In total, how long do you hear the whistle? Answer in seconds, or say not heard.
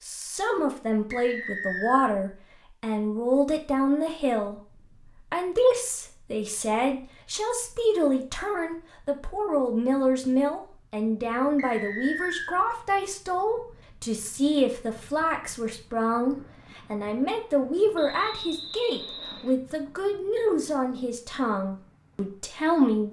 4 s.